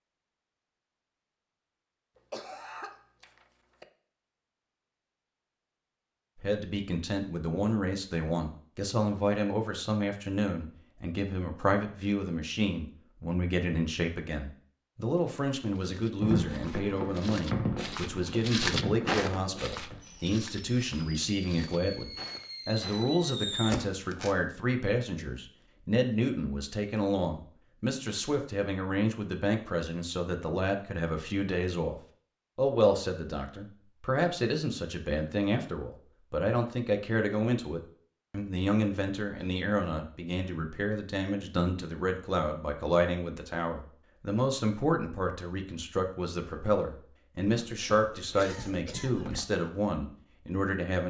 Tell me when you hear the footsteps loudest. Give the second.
19 s.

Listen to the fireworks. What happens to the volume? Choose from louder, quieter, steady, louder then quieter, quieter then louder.
quieter then louder.